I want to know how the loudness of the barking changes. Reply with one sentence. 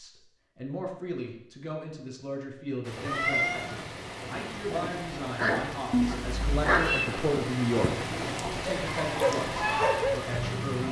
The loudness of the barking goes down, then up.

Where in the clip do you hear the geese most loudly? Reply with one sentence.
The volume of the geese peaks at 10 seconds.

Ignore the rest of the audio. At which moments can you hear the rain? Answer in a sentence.
You can hear the rain from 2.8 to 10.8 s.